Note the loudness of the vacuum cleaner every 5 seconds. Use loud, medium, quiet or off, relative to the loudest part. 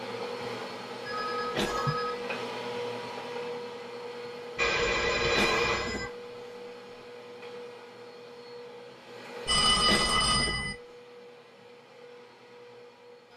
loud, medium, quiet.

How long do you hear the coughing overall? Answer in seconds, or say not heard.
2 s.